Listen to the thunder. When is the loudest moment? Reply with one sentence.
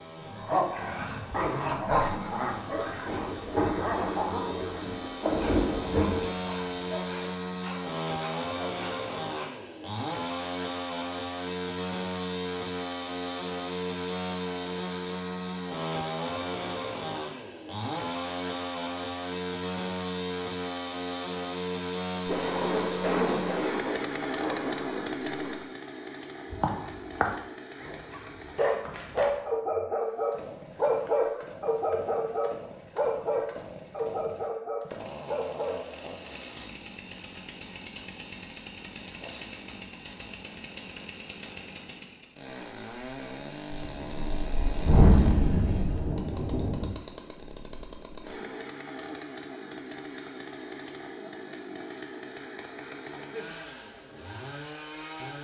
The volume of the thunder peaks at 45 seconds.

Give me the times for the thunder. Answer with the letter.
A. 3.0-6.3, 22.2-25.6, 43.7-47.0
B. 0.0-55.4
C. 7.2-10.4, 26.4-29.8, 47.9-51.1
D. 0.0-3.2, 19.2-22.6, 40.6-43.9
A.